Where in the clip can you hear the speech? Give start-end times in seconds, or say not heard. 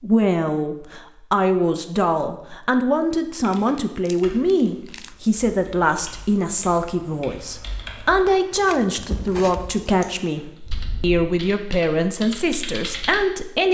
0.0-13.6.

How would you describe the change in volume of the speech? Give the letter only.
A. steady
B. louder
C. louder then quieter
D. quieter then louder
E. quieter
A.